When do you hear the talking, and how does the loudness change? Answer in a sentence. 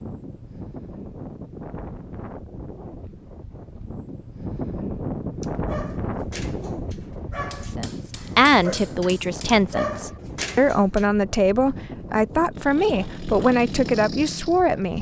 You can hear the talking from 7.8 to 14.9 s, at a steady volume.